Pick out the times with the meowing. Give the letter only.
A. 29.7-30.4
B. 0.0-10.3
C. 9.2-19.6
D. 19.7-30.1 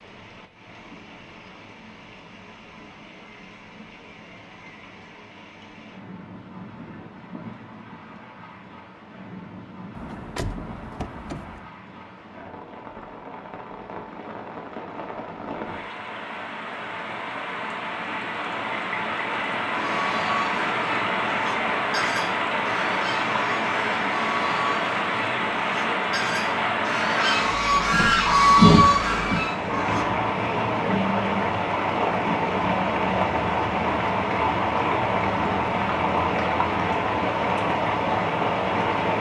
A.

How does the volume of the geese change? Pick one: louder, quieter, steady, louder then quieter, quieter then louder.
louder.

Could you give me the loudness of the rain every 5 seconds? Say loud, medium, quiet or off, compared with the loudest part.
quiet, quiet, quiet, medium, loud, loud, loud, loud.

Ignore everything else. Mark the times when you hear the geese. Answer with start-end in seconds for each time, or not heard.
19.7-30.1.